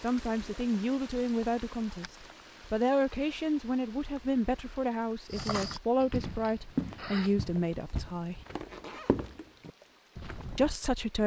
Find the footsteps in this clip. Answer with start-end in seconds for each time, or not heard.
5.3-10.8.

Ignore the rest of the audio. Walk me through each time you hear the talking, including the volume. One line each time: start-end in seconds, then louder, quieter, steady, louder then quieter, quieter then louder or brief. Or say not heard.
0.0-8.4 steady
10.6-11.2 brief.